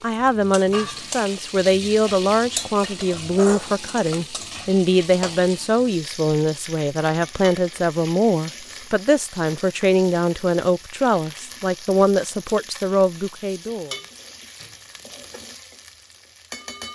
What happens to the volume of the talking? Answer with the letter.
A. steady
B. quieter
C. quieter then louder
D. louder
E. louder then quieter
A.